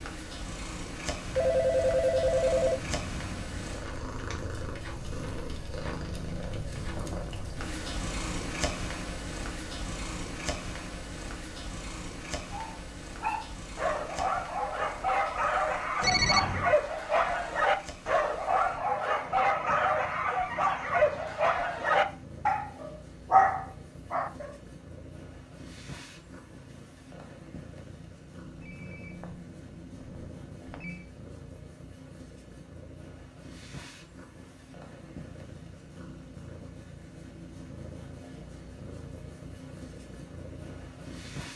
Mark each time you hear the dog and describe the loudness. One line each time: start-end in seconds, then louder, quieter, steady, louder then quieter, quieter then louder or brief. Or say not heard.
12.5-24.6 louder.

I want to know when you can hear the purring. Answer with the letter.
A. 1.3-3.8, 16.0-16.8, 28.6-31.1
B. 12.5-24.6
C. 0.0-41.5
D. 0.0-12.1
C.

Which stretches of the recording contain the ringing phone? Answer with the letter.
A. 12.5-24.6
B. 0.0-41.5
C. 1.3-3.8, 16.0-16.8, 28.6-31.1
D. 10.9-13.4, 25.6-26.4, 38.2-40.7
C.